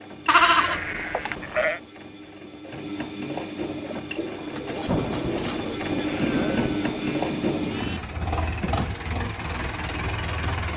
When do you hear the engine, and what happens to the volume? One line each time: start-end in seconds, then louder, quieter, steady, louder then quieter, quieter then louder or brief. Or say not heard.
0.0-10.7 louder.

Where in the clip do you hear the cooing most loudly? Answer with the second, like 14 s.
5 s.